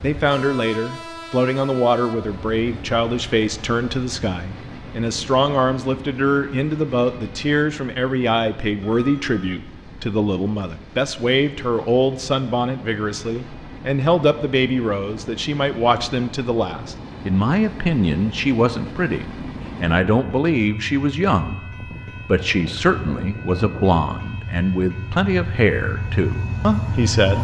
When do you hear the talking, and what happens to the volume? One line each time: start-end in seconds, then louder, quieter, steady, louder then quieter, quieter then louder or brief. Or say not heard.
0.0-21.6 steady
22.2-27.3 steady.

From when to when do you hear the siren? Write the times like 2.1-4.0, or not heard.
not heard.